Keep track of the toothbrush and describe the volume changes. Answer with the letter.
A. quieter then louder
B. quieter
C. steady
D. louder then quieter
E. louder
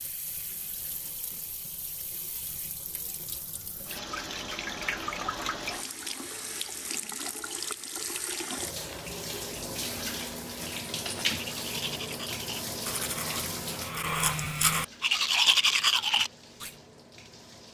E.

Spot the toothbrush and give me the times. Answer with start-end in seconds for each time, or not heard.
10.5-16.7.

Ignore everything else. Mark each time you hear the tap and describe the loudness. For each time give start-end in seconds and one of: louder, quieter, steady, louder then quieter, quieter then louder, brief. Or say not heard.
0.0-17.6 louder then quieter.